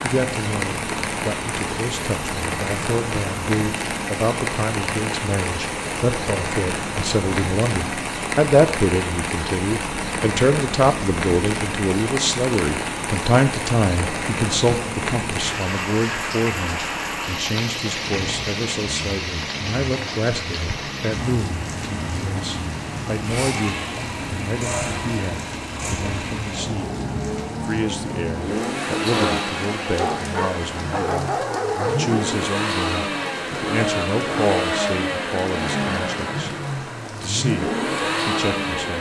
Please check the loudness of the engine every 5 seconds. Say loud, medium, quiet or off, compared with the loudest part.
medium, medium, medium, medium, medium, loud, loud, loud.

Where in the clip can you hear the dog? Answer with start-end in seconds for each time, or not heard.
29.9-32.2.